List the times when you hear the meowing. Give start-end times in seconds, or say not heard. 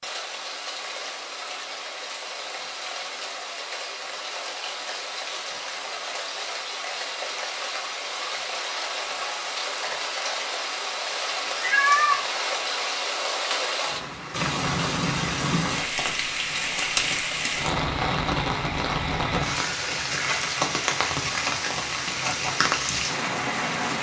11.6-12.2.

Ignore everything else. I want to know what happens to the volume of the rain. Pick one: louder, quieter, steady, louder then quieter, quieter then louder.
louder.